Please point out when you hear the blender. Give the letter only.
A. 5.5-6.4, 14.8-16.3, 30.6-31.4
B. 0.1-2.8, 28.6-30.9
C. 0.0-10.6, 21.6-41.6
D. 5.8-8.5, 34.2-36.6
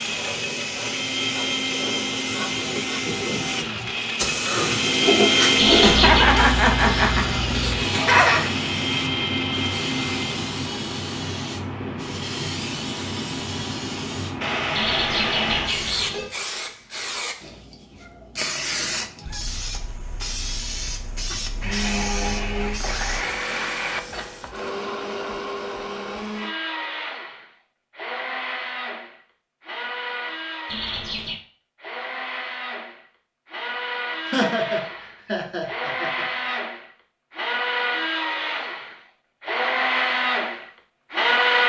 C.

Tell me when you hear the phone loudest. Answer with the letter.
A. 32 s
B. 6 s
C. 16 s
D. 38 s
B.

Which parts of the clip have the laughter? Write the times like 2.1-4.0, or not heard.
5.8-8.5, 34.2-36.6.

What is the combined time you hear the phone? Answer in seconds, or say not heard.
3 s.